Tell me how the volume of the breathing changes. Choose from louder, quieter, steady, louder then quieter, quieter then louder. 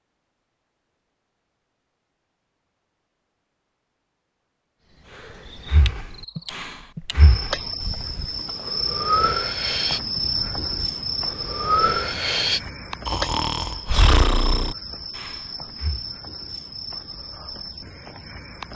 louder.